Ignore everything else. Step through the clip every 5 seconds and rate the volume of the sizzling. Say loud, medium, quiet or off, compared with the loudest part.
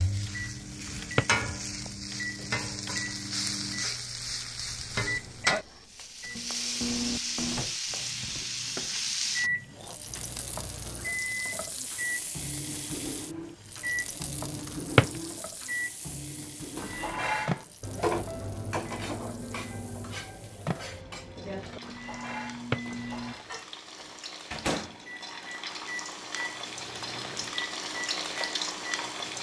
loud, loud, medium, quiet, quiet, loud.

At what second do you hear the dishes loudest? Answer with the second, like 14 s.
18 s.